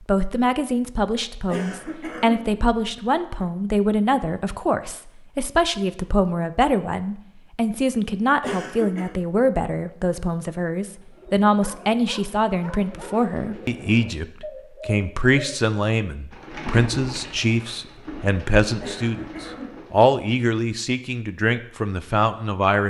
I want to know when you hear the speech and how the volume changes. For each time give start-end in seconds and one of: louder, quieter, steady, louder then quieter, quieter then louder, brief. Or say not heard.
0.1-22.8 steady.